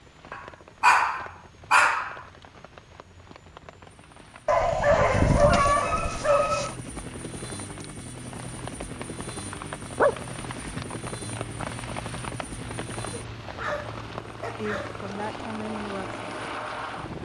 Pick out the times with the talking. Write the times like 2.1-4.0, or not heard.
14.6-16.2.